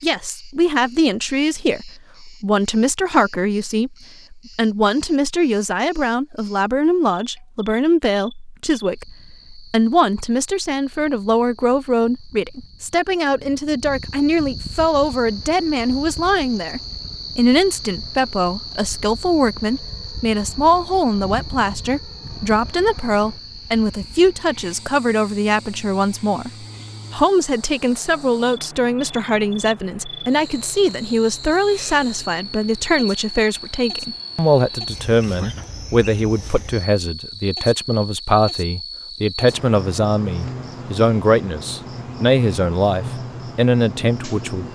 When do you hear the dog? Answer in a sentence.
You can't hear the dog here.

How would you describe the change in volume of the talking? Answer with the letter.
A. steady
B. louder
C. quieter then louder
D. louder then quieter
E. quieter
A.